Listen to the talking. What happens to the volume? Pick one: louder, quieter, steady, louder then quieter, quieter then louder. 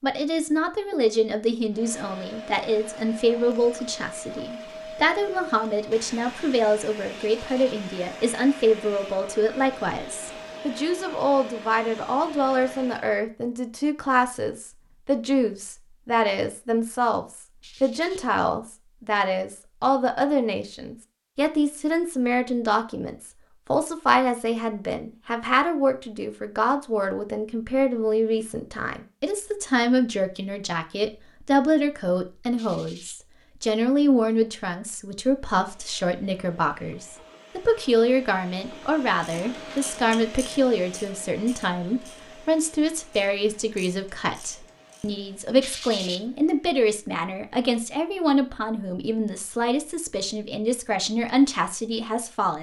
steady.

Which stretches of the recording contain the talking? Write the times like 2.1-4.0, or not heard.
0.0-52.5.